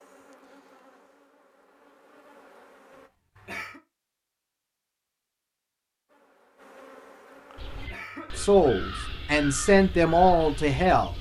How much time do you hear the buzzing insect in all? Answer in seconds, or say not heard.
5 s.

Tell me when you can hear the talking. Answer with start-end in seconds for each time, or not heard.
8.3-11.1.